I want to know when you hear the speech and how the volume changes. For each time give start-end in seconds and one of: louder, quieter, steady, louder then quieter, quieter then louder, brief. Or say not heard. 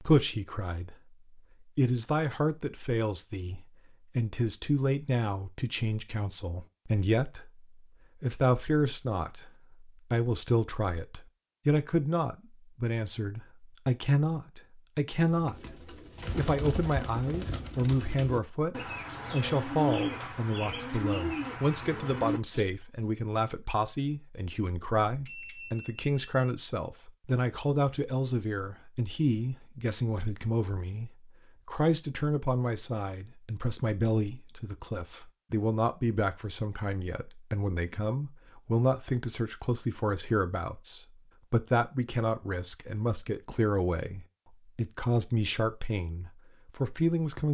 0.0-47.5 steady.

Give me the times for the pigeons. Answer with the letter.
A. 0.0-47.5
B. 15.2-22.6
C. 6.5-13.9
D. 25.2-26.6
B.